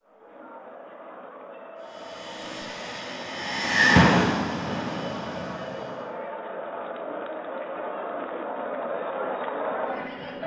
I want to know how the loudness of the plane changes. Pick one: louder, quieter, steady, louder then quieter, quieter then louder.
louder then quieter.